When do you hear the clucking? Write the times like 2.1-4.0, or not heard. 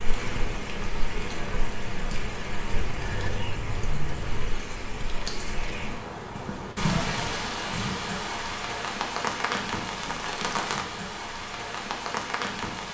2.8-4.5.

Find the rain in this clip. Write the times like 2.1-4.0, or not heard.
0.0-12.9.